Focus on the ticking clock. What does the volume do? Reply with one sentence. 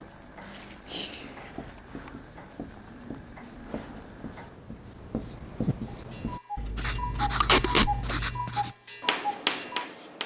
The volume of the ticking clock goes up.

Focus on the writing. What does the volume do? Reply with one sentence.
The loudness of the writing goes up.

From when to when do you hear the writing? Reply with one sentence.
The writing can be heard from 1.1 to 10.2 s.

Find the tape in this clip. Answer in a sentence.
The tape can be heard from 7.4 to 7.9 s.